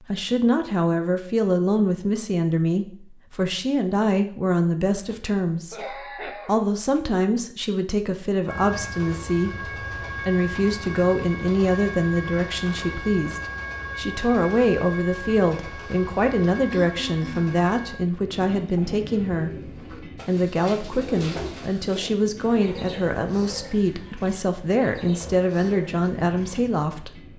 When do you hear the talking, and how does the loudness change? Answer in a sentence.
The talking can be heard from 0.0 to 27.3 s, at a steady volume.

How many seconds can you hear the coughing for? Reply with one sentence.
You can hear the coughing for 3 seconds altogether.